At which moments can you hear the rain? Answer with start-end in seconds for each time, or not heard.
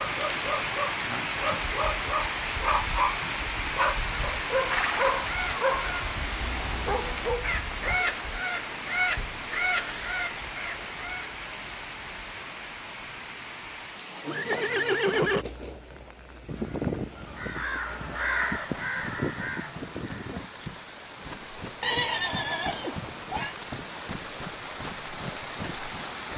0.0-26.3.